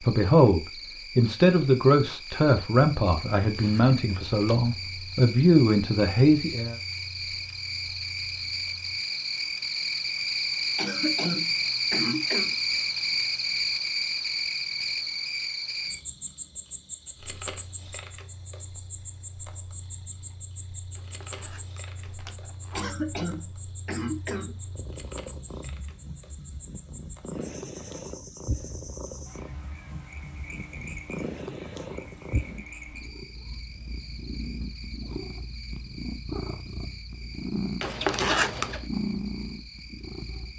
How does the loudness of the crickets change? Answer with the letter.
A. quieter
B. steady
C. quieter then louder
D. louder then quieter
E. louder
D.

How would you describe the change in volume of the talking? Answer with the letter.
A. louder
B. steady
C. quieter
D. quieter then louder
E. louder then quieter
D.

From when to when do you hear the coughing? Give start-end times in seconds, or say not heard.
10.8-12.6, 22.8-24.6.